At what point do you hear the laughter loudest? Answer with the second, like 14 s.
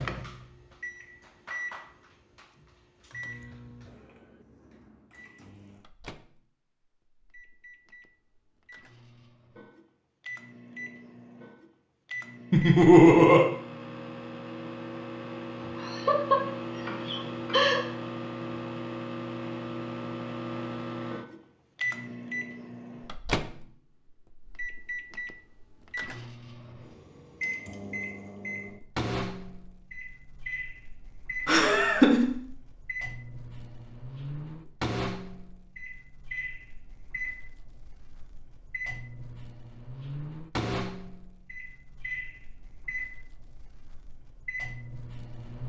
13 s.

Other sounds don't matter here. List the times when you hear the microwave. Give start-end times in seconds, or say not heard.
0.0-45.6.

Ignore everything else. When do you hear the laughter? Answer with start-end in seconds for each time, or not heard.
12.5-13.4, 15.6-17.9, 31.4-32.3.